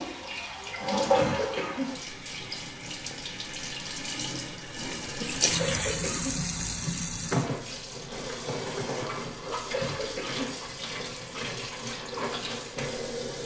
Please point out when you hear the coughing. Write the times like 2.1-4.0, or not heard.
0.9-2.0, 5.5-6.5, 9.6-10.7.